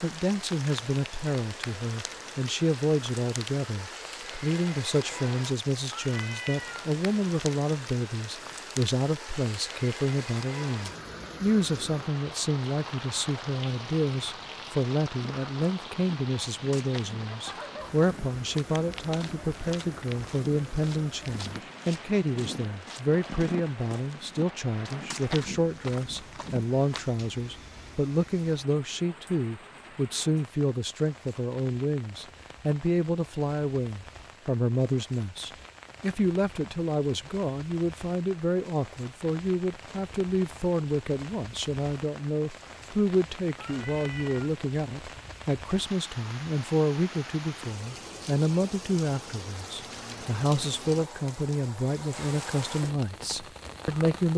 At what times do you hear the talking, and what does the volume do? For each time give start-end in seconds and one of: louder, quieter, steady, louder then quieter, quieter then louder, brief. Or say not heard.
0.0-54.3 steady.